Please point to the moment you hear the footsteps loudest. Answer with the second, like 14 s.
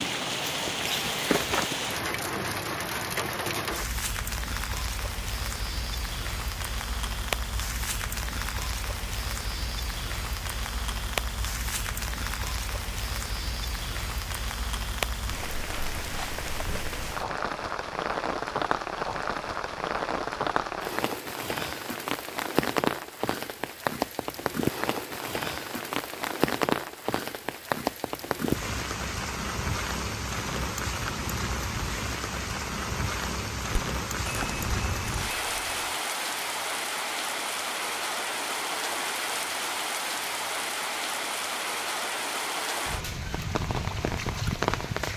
1 s.